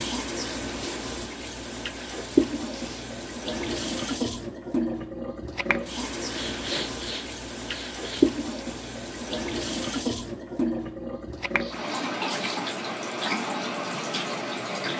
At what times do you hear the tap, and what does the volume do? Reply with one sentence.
The tap can be heard from 0.0 to 14.9 s, at a steady volume.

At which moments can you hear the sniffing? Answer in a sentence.
The sniffing can be heard from 2.6 to 3.1 s, from 6.3 to 8.3 s and from 11.6 to 12.7 s.